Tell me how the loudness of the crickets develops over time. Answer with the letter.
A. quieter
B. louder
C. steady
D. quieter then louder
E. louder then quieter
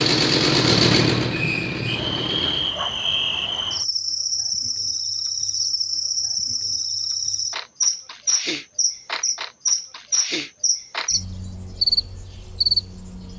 C.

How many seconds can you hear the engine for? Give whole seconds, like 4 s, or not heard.
3 s.